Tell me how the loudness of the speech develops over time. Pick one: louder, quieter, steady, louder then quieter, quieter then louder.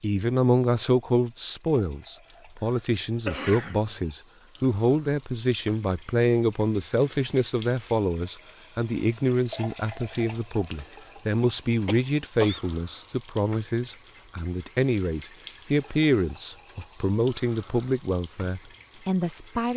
steady.